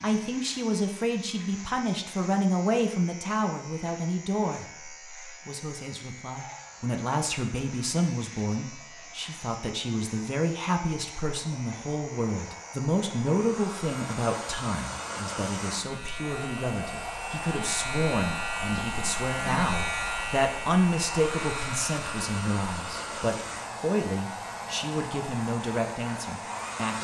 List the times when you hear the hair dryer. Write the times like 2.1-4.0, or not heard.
6.5-27.0.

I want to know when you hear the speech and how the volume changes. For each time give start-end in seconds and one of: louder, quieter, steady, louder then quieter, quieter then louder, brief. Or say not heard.
0.0-27.0 steady.